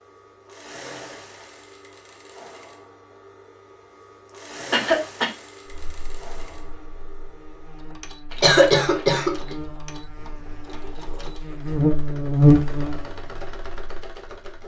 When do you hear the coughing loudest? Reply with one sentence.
The loudest moment of the coughing is at 9 seconds.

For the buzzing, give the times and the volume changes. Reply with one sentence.
The buzzing can be heard from 5.7 to 14.6 s, getting louder then quieter.